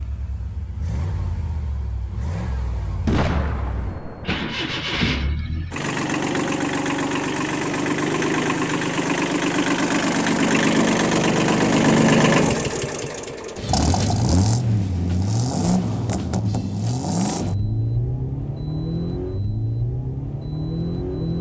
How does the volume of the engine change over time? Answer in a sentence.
The loudness of the engine goes up, then down.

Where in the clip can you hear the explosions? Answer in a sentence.
The explosions can be heard from 3.0 to 5.0 s.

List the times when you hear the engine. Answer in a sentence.
The engine can be heard from 0.0 to 21.3 s.